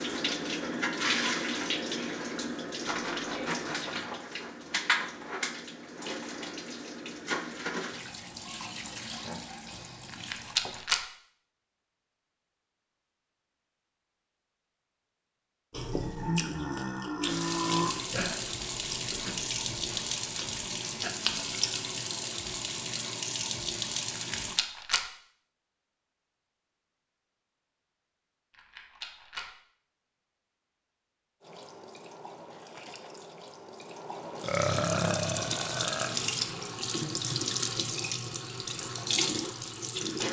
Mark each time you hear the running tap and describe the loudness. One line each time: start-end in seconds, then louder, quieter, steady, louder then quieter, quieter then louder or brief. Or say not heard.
0.0-10.9 quieter
17.2-24.6 steady
31.4-40.2 louder.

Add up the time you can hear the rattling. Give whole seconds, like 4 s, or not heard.
3 s.